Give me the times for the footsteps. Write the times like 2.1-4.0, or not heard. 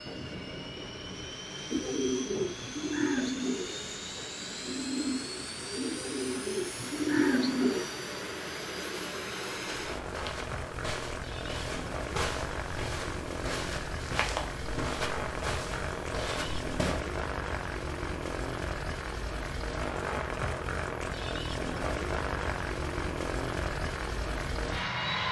9.6-17.0.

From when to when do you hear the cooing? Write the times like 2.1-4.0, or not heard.
1.7-7.9.